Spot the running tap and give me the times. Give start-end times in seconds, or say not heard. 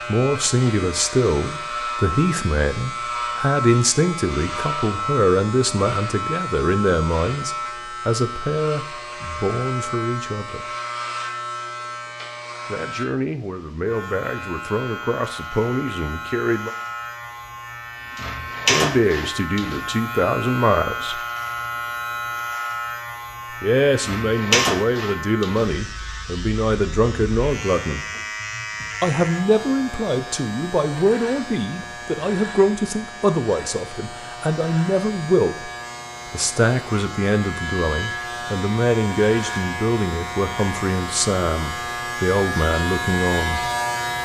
not heard.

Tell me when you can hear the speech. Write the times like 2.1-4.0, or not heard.
0.1-10.8, 12.7-16.7, 18.6-21.2, 23.6-28.1, 29.0-35.7, 36.3-43.7.